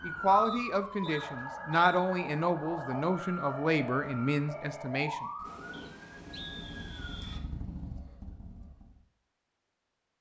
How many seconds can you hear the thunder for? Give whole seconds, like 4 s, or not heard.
2 s.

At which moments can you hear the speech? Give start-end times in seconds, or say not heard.
0.0-5.2.